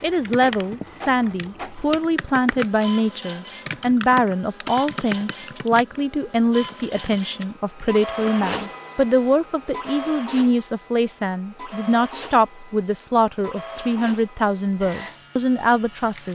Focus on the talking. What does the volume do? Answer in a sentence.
The volume of the talking stays about the same.